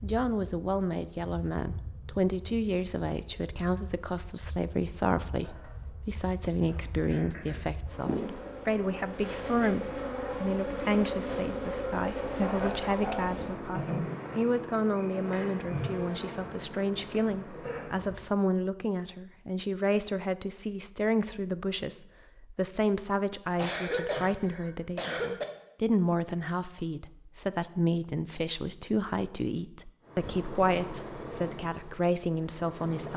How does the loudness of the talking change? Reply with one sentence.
The volume of the talking stays about the same.